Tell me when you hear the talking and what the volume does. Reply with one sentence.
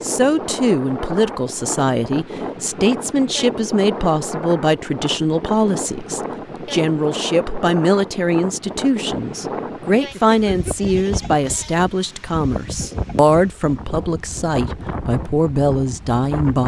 The talking can be heard from 0.0 to 16.6 s, at a steady volume.